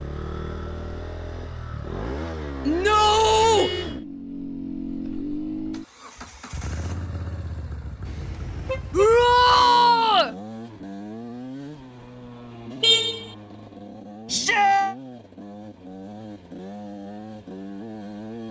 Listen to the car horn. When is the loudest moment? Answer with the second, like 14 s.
13 s.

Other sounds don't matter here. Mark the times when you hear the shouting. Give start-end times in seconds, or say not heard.
2.6-3.7, 8.9-10.3, 14.3-14.9.